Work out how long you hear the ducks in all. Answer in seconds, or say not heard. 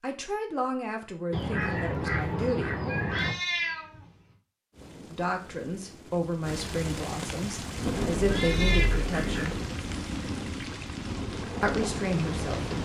4 s.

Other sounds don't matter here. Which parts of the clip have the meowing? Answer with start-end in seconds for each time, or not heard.
3.0-4.3, 8.2-8.9.